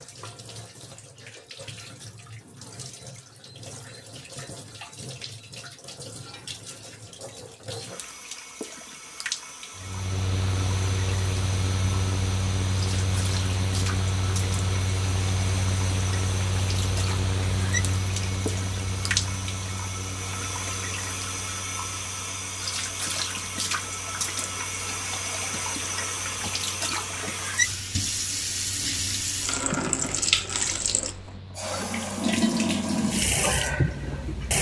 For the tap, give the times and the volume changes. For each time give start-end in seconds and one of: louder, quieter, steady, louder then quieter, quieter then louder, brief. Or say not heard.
0.0-34.5 louder.